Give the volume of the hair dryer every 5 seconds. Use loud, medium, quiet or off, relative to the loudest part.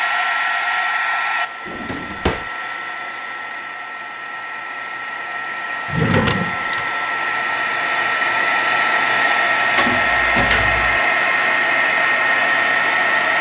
medium, loud, loud.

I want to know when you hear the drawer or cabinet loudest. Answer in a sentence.
The loudest moment of the drawer or cabinet is at 6 seconds.